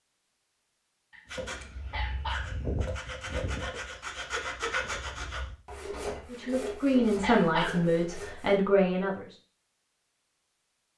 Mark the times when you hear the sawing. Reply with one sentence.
The sawing can be heard from 1.2 to 8.6 s.